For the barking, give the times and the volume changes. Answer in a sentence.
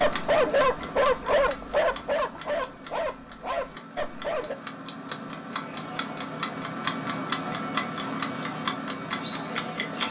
The barking can be heard from 0.0 to 4.5 s, getting quieter.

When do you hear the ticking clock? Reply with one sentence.
The ticking clock can be heard from 0.0 to 10.0 s.